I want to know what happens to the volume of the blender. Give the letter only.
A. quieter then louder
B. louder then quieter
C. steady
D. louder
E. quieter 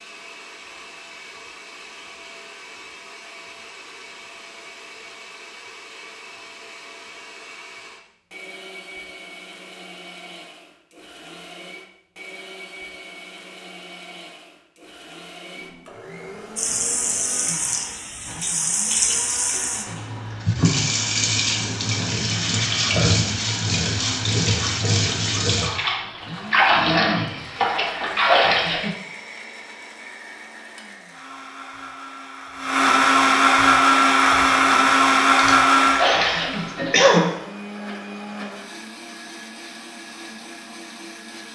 D.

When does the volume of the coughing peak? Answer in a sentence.
The loudest moment of the coughing is at 37 seconds.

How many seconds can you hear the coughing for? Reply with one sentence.
The coughing can be heard for 2 seconds in total.